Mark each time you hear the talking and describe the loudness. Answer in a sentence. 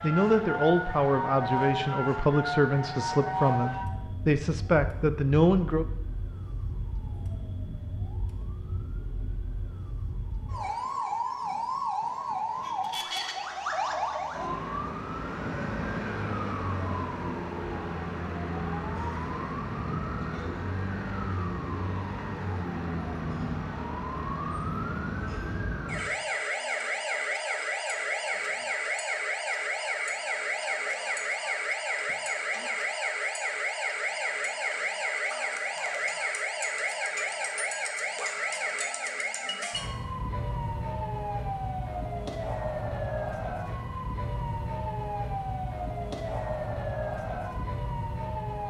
You can hear the talking from 0.0 to 5.8 s, at a steady volume.